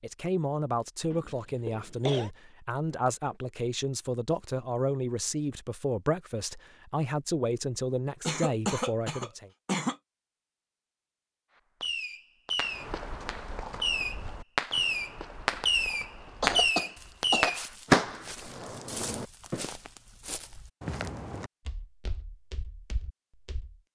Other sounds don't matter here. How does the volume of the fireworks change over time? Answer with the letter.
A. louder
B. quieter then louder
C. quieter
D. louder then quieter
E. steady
A.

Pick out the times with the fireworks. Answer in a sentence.
The fireworks can be heard from 11.8 to 19.7 s.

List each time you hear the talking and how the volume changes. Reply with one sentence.
The talking can be heard from 0.0 to 9.5 s, at a steady volume.